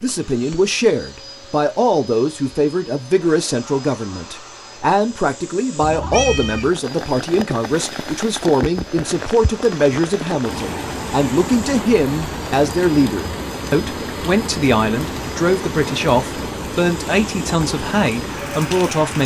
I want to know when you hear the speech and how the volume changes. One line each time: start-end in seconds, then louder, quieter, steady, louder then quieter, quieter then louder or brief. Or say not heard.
0.0-19.2 steady.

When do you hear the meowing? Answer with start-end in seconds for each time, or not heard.
5.8-6.8.